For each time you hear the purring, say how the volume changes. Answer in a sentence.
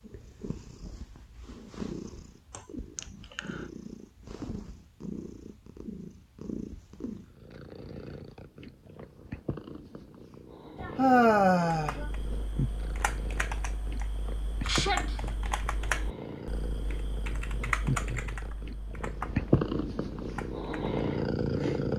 You can hear the purring from 0.0 to 21.9 s, getting louder.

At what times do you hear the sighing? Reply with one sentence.
You can hear the sighing from 2.5 to 3.6 s, from 10.8 to 12.1 s and from 14.7 to 15.2 s.